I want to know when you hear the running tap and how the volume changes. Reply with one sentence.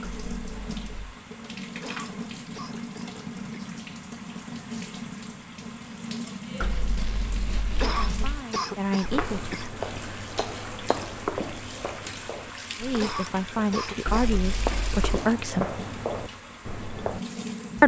The running tap can be heard from 0.0 to 17.8 s, at a steady volume.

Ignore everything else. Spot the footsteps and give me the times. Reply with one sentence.
You can hear the footsteps from 9.0 to 17.2 s.